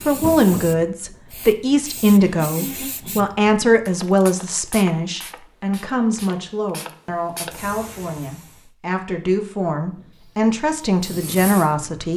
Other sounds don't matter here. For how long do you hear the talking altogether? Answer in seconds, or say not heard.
12 s.